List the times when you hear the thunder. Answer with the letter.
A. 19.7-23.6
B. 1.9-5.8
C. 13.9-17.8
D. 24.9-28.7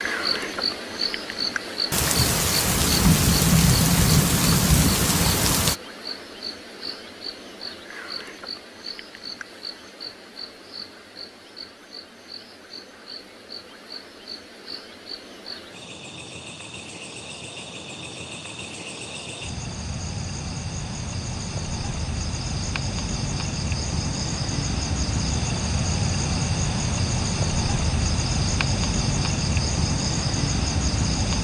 B.